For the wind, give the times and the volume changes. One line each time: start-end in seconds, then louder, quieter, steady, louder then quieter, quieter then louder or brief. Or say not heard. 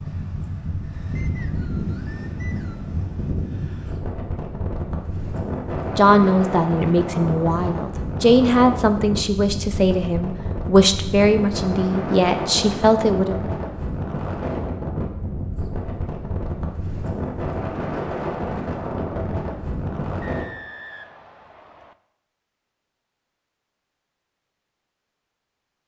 0.0-20.4 steady.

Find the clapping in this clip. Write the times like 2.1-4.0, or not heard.
not heard.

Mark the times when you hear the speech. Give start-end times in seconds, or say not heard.
6.0-13.3.